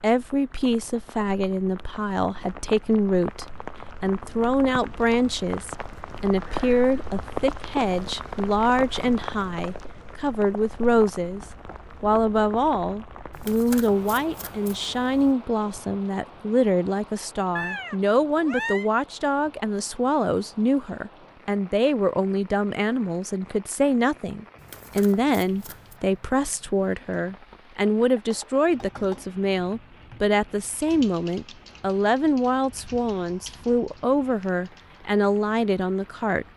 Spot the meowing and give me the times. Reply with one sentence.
You can hear the meowing from 17.6 to 18.9 s.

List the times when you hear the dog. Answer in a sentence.
You can't hear the dog here.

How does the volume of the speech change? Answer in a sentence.
The loudness of the speech stays about the same.